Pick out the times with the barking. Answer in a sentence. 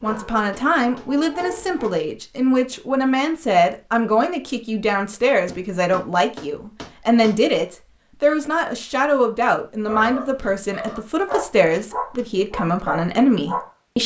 You can hear the barking from 0.0 to 1.9 s and from 9.8 to 14.0 s.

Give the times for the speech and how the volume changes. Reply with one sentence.
You can hear the speech from 0.0 to 14.0 s, at a steady volume.